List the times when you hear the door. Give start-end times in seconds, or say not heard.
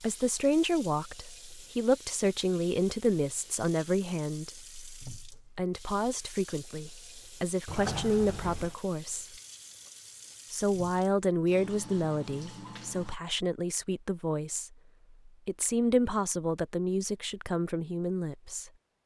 7.7-8.8.